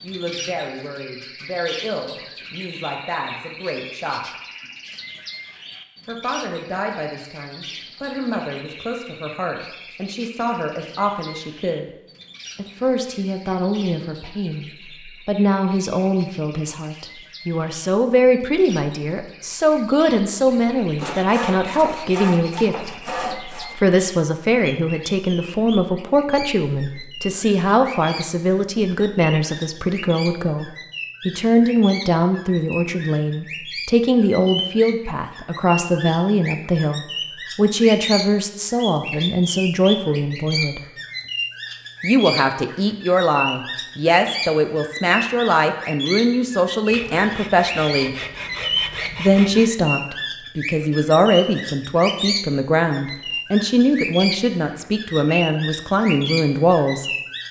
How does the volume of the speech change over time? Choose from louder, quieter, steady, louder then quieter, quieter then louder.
louder.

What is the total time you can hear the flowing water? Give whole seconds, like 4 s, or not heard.
not heard.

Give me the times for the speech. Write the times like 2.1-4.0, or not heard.
0.0-4.3, 6.0-11.9, 12.6-40.9, 42.0-48.1, 49.1-57.1.